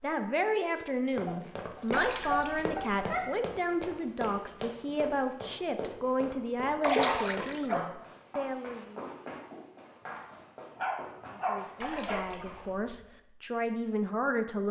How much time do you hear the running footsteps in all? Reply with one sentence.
The running footsteps can be heard for 12 seconds in total.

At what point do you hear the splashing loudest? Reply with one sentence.
The loudest moment of the splashing is at 7 seconds.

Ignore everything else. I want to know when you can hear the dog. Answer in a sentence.
You can hear the dog from 0.5 to 3.2 s, from 6.8 to 7.9 s and from 10.8 to 12.2 s.